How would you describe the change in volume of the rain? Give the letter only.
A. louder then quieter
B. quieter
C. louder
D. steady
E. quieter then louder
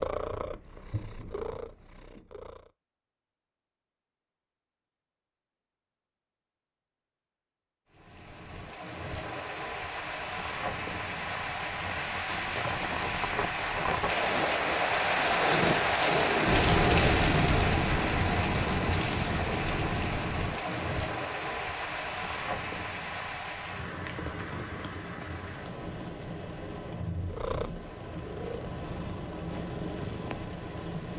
A.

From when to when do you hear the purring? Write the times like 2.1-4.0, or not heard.
0.0-2.8, 27.3-31.1.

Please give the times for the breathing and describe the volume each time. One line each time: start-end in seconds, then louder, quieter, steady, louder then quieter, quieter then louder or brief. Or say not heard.
not heard.